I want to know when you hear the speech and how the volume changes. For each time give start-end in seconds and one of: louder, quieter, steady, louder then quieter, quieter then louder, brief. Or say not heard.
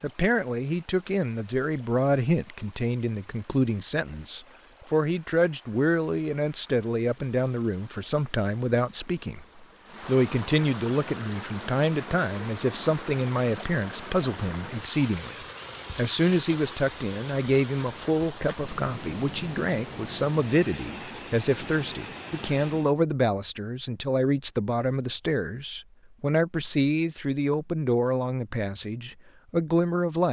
0.0-30.2 steady.